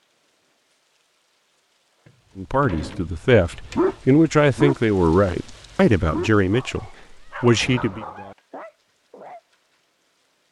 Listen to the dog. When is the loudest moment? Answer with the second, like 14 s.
4 s.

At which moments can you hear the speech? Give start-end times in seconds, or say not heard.
2.4-8.1.